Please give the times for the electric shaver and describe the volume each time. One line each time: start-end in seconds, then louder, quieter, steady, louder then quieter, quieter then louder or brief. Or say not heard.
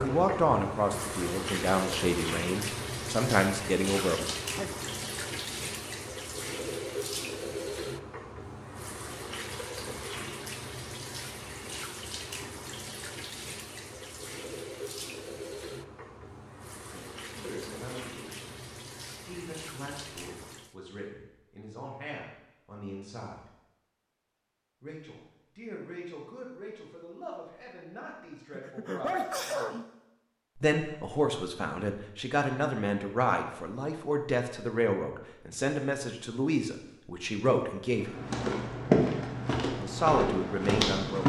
not heard.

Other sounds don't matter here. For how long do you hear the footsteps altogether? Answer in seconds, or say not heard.
3 s.